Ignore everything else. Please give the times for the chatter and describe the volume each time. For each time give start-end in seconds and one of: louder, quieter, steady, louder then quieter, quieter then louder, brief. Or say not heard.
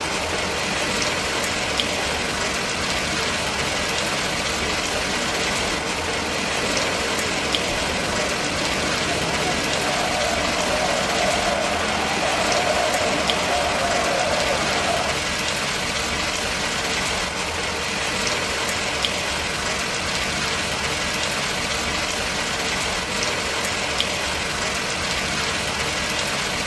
0.0-15.2 louder.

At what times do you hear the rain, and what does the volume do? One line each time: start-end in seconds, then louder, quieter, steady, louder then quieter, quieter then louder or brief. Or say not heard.
0.0-26.6 steady.